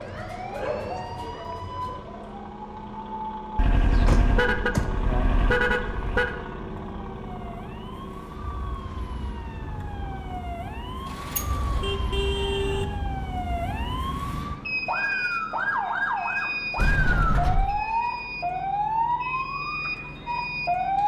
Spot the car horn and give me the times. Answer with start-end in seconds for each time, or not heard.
3.5-6.3, 11.7-12.8.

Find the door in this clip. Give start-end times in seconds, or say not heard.
3.8-5.0, 11.1-11.9, 16.8-17.8.